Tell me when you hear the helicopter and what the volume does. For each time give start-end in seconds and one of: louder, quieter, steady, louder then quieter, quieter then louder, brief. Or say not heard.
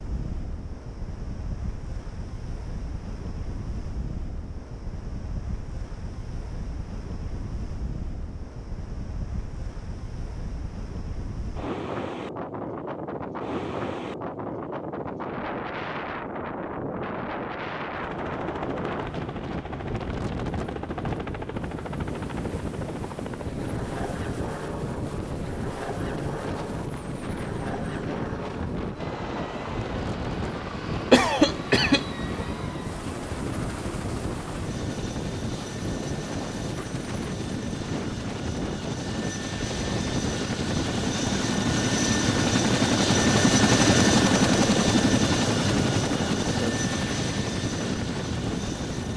17.9-49.1 louder.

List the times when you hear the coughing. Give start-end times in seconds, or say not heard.
31.1-32.0.